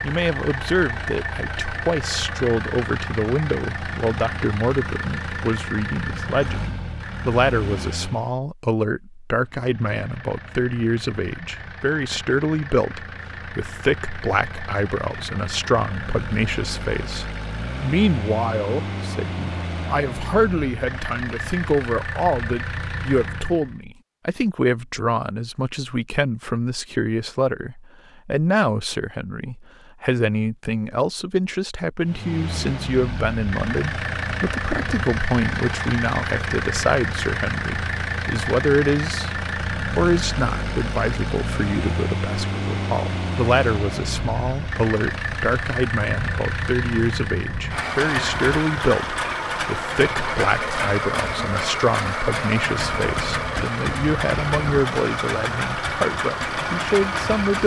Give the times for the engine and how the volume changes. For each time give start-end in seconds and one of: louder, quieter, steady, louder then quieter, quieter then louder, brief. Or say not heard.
0.0-8.3 steady
9.3-23.8 louder
32.0-57.6 steady.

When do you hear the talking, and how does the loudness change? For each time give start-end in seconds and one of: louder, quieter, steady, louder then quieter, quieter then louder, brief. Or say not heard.
0.0-57.6 steady.